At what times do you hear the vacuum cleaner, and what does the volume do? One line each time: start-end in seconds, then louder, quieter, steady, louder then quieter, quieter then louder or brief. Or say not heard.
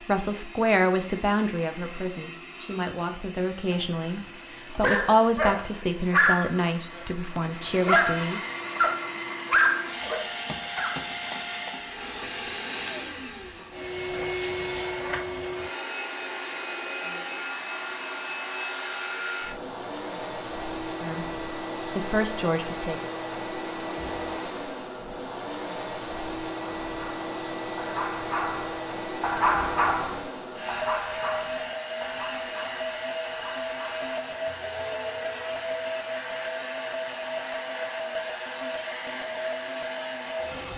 0.0-40.7 louder.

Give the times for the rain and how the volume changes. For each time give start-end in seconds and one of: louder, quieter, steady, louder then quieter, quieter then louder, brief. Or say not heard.
not heard.